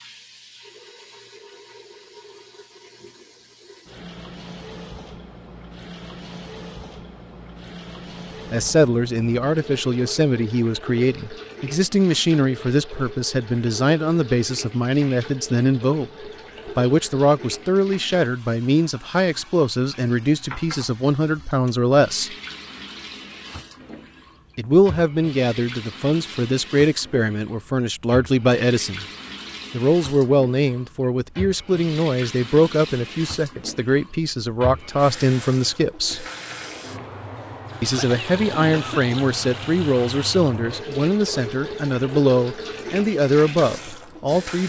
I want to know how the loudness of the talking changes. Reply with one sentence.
The volume of the talking stays about the same.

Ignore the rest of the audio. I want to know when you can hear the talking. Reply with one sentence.
The talking can be heard from 8.5 to 22.4 s, from 24.6 to 29.1 s, from 29.7 to 36.2 s and from 37.8 to 44.6 s.